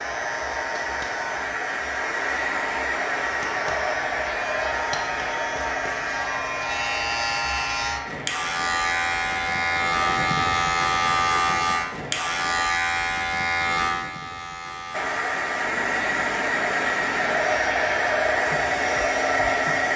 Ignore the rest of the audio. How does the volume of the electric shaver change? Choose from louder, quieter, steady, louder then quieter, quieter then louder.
louder then quieter.